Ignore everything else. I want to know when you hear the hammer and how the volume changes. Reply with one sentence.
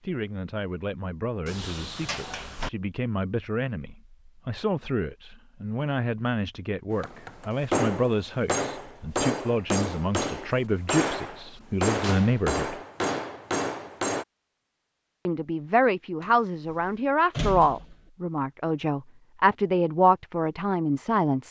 You can hear the hammer from 6.9 to 14.2 s, at a steady volume.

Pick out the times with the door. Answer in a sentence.
The door can be heard from 1.4 to 2.7 s and from 16.2 to 18.0 s.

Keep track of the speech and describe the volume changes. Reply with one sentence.
The volume of the speech goes up.